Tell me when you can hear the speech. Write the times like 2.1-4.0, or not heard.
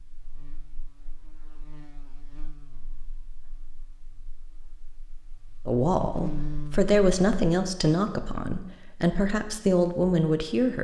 5.7-10.8.